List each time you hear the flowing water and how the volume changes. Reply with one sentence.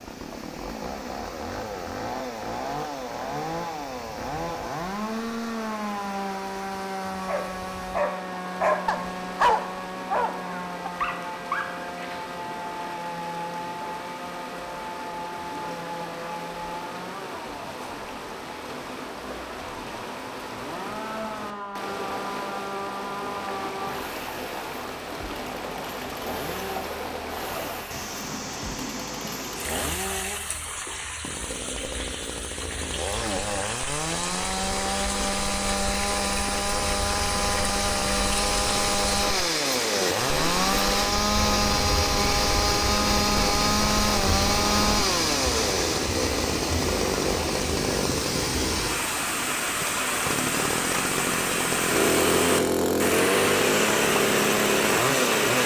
You can hear the flowing water from 0.0 to 55.6 s, getting louder.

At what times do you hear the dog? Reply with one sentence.
You can hear the dog from 7.1 to 12.2 s.